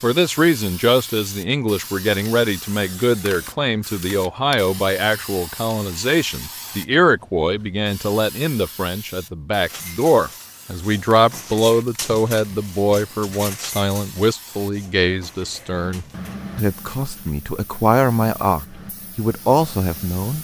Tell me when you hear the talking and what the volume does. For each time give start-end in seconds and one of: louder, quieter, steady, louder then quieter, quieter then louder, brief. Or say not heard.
0.0-20.3 steady.